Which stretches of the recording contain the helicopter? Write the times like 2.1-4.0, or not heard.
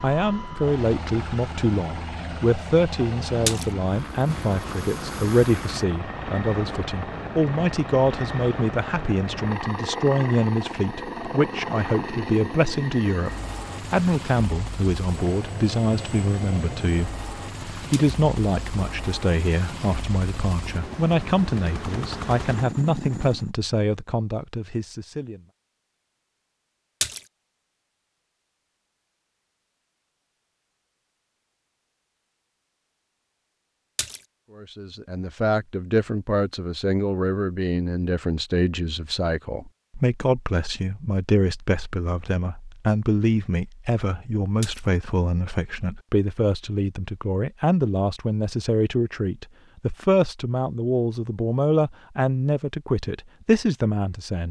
0.0-23.5.